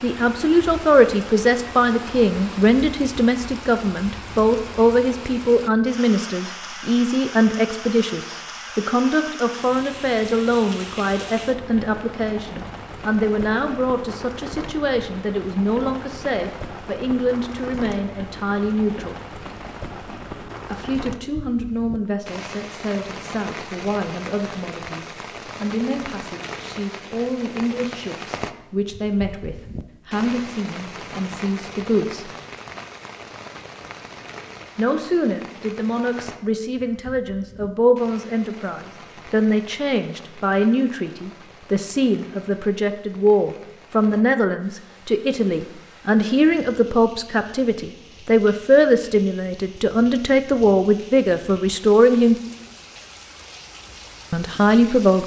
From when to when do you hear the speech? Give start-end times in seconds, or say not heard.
0.0-19.1, 20.6-32.3, 34.8-52.4, 54.3-55.2.